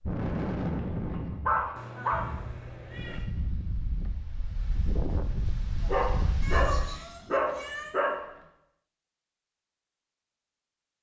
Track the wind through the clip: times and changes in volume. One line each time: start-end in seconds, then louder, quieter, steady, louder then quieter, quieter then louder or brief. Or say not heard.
0.0-7.0 quieter then louder.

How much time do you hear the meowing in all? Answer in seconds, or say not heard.
3 s.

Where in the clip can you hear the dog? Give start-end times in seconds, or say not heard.
0.8-2.2, 5.8-8.2.